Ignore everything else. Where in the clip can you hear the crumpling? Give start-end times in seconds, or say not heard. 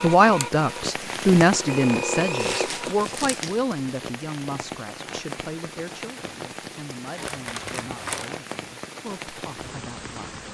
2.4-3.6, 7.2-8.3.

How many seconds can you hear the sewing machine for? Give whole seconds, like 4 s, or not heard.
3 s.